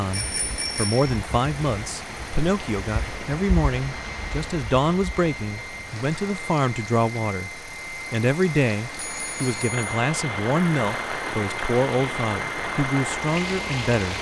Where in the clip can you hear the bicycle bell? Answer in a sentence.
You can hear the bicycle bell from 0.1 to 1.1 s and from 8.9 to 9.9 s.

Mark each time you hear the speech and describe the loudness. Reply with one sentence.
You can hear the speech from 0.0 to 14.1 s, at a steady volume.